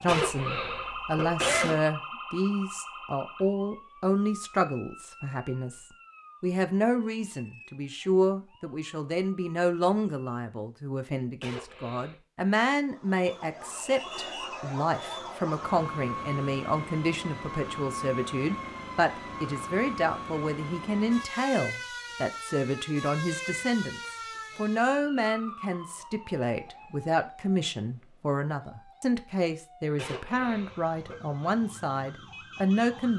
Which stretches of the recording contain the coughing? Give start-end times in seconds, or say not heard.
0.1-1.8, 11.4-12.2, 29.9-31.2.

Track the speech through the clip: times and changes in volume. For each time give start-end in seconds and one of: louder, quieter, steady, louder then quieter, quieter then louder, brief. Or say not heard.
0.0-33.1 steady.